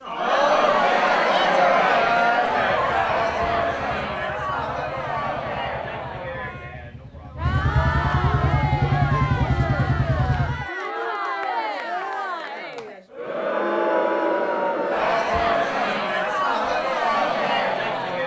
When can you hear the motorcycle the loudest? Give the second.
9 s.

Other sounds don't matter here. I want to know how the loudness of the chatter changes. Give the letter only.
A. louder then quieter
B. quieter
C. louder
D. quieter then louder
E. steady
D.